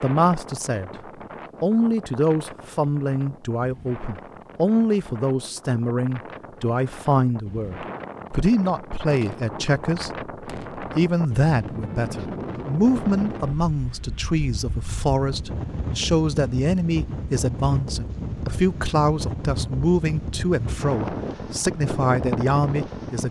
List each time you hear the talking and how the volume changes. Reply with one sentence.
You can hear the talking briefly from 0.0 to 0.9 s; and from 1.6 to 23.2 s, at a steady volume.